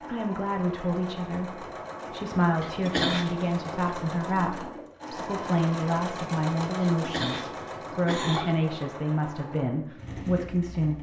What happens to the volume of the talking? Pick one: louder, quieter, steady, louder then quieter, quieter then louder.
steady.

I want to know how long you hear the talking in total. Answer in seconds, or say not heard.
11 s.